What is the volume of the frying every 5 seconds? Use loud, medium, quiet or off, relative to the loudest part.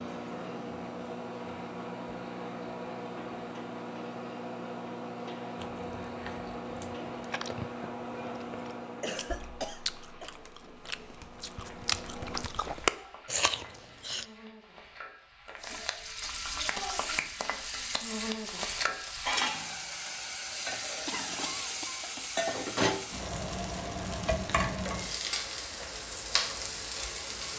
quiet, quiet, quiet, loud, loud, loud.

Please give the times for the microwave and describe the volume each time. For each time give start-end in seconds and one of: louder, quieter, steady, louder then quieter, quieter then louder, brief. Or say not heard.
0.0-12.4 quieter.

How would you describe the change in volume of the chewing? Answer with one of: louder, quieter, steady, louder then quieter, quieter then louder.
louder.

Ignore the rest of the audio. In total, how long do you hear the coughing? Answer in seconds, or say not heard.
3 s.